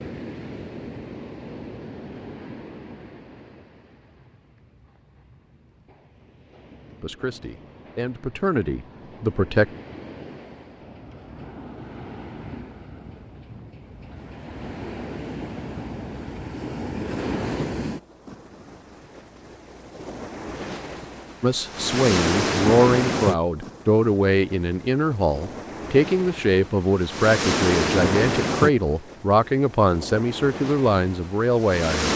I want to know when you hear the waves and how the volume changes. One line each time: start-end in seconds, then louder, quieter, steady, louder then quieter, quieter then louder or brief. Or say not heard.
0.0-32.1 louder.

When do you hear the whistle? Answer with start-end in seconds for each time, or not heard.
not heard.